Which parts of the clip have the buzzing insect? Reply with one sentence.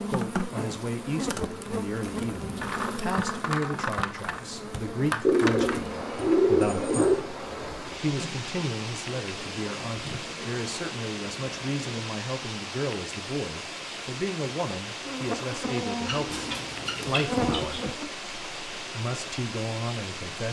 The buzzing insect can be heard from 0.0 to 11.8 s and from 15.1 to 18.1 s.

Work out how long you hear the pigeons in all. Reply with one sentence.
You can hear the pigeons for 4 seconds altogether.